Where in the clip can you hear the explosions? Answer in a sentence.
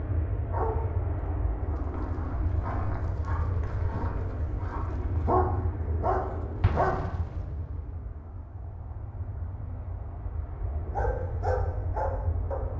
The explosions can be heard from 6.6 to 7.9 s.